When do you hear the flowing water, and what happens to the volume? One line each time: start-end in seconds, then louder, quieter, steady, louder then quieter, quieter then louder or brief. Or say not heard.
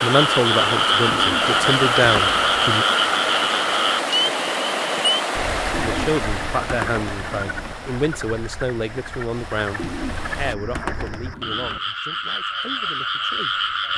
0.0-10.6 quieter.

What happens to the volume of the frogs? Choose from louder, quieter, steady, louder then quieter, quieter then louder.
quieter then louder.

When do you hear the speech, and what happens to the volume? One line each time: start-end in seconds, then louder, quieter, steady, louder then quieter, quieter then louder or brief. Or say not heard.
0.0-2.9 brief
5.8-13.9 quieter.